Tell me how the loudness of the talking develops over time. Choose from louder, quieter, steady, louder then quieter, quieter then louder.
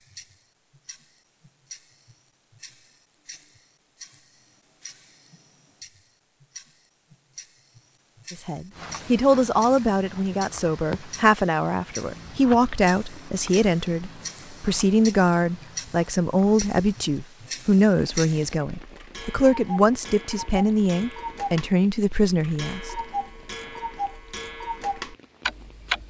steady.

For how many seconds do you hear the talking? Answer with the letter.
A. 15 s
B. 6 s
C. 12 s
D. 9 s
A.